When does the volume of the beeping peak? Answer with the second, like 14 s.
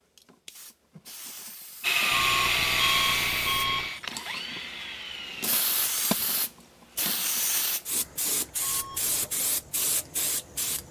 3 s.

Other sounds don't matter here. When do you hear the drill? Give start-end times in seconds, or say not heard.
1.8-5.5.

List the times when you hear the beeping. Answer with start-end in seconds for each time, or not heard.
2.1-3.9, 8.6-9.3.